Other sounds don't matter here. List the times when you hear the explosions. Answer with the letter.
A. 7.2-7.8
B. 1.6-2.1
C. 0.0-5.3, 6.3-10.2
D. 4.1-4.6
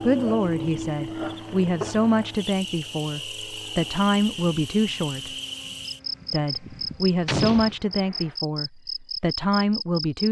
A.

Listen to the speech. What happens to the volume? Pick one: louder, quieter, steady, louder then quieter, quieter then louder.
steady.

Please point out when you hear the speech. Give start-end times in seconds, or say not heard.
0.0-5.3, 6.3-10.2.